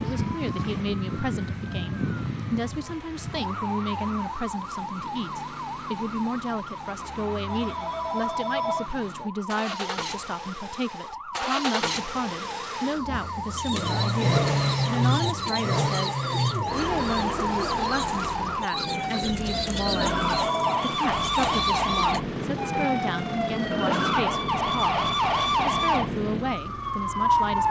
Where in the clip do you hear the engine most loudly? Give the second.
15 s.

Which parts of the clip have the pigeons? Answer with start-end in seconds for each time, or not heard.
13.5-22.2.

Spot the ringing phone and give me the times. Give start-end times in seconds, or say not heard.
7.5-8.9, 20.2-20.9.